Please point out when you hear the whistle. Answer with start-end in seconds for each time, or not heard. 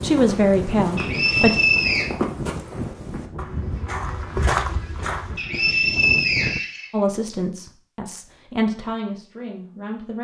0.9-2.1, 5.3-7.3.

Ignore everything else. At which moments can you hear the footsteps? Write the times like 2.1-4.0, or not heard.
0.0-5.4.